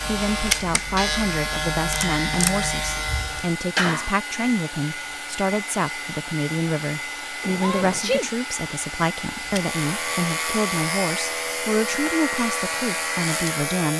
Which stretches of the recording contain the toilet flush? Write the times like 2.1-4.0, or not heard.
not heard.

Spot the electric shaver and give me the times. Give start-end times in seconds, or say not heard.
0.0-3.5, 9.4-13.9.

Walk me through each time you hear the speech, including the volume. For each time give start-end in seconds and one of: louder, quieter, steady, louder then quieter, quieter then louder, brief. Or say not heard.
0.1-13.9 steady.